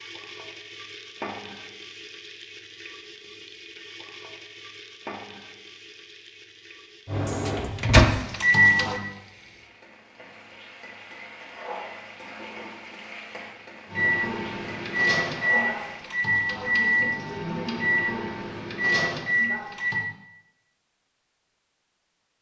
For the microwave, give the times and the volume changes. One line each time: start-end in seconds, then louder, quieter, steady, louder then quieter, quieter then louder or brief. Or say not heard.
7.0-9.0 brief
13.9-20.1 steady.